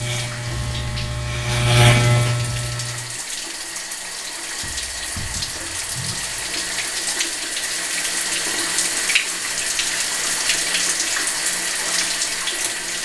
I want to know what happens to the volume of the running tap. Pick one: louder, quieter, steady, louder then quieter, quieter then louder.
louder.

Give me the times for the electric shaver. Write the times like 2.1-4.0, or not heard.
0.0-3.2.